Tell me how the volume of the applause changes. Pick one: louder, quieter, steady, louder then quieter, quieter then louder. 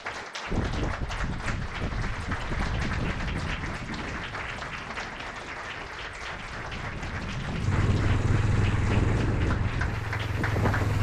steady.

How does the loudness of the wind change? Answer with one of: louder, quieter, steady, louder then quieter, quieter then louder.
quieter then louder.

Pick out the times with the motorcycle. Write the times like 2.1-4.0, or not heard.
7.6-10.9.